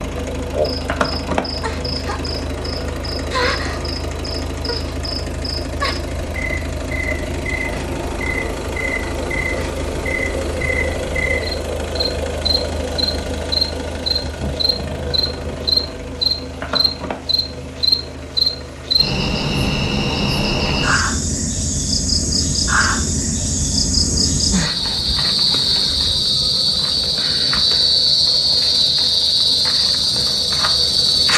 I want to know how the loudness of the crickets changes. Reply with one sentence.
The volume of the crickets goes up.